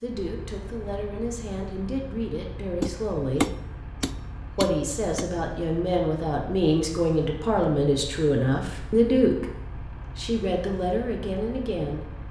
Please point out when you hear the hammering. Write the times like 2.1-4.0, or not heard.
2.8-5.2.